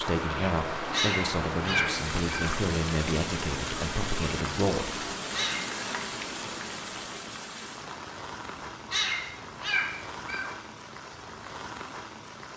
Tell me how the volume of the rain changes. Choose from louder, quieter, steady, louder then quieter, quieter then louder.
quieter.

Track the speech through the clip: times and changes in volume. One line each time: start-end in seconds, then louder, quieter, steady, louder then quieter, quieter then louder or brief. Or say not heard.
0.0-5.0 steady.